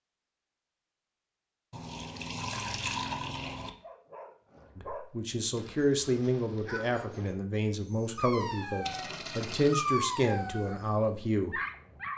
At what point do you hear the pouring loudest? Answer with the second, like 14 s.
3 s.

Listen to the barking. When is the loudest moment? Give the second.
10 s.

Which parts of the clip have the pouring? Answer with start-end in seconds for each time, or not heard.
1.7-3.7, 8.8-9.8.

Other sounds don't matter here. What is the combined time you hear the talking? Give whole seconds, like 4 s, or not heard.
7 s.